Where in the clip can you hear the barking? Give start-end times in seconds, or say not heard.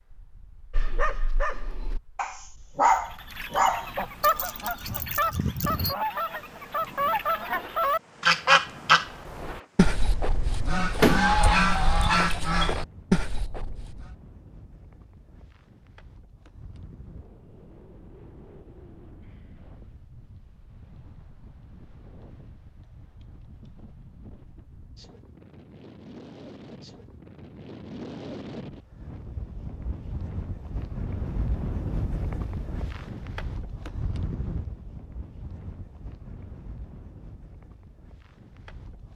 0.7-6.0.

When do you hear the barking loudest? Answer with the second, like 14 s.
3 s.